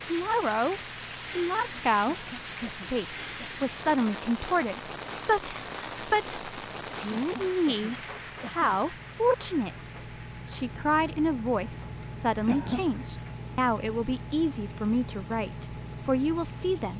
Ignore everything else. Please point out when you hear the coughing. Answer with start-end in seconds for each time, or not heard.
2.0-3.5, 7.1-9.2, 12.4-12.8.